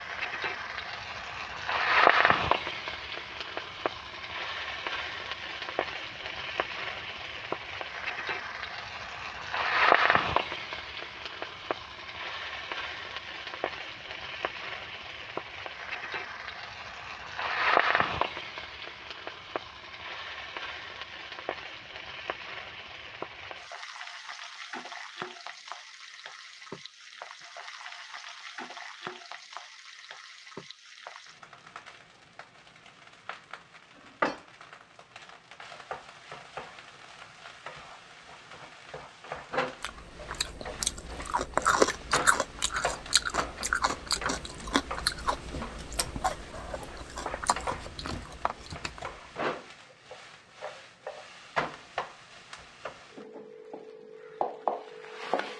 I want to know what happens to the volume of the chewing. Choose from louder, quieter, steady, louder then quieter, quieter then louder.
quieter.